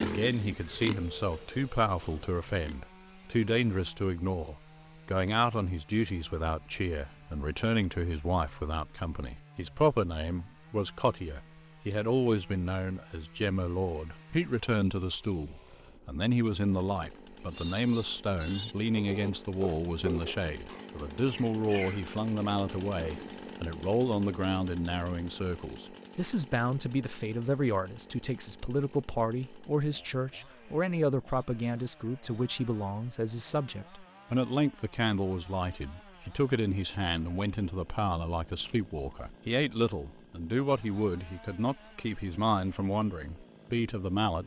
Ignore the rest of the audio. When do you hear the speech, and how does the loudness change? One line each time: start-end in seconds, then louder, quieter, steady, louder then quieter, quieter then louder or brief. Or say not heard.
0.0-44.4 steady.